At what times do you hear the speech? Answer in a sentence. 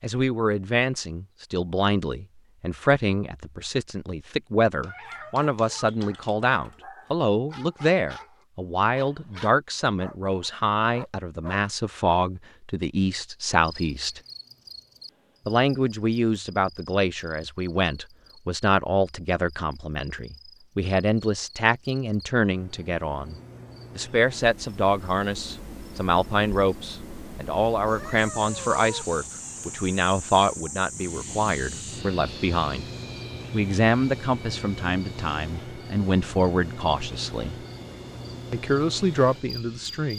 The speech can be heard from 0.0 to 14.2 s, from 15.4 to 23.4 s, from 23.9 to 32.9 s, from 33.5 to 37.6 s and from 38.5 to 40.1 s.